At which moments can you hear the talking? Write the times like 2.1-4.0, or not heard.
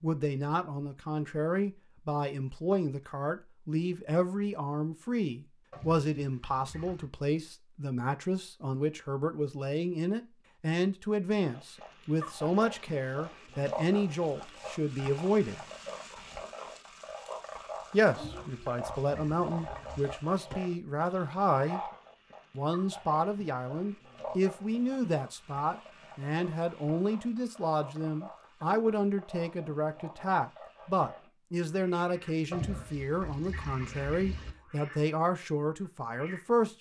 0.0-15.6, 17.9-21.8, 22.5-36.7.